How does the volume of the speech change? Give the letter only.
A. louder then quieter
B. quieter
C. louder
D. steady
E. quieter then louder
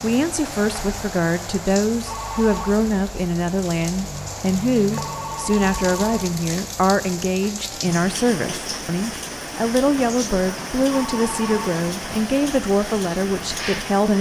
D.